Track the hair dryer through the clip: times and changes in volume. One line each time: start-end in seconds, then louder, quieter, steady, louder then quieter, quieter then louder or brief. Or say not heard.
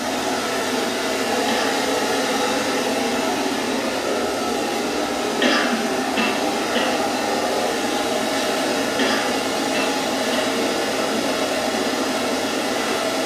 0.0-13.2 steady.